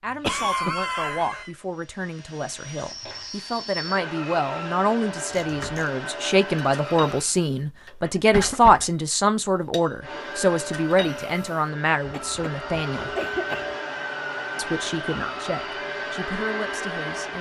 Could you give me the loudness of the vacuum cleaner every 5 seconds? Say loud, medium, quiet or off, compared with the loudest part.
medium, loud, loud, loud.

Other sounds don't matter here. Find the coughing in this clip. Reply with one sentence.
You can hear the coughing from 0.2 to 1.5 s, from 8.3 to 8.9 s and from 12.1 to 13.7 s.